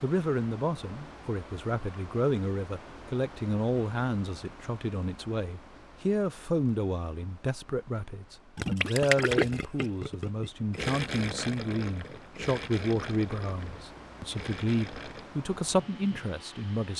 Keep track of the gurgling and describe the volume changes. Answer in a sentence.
The volume of the gurgling goes down.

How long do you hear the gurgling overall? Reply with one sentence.
You can hear the gurgling for 7 seconds altogether.